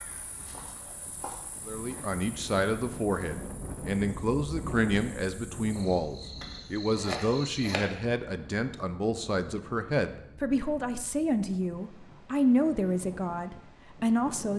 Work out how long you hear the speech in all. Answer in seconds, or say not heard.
13 s.